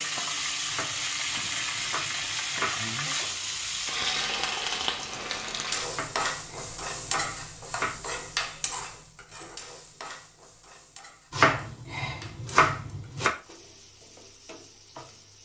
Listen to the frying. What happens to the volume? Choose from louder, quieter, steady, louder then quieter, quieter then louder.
quieter.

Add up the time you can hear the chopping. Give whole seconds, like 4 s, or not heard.
7 s.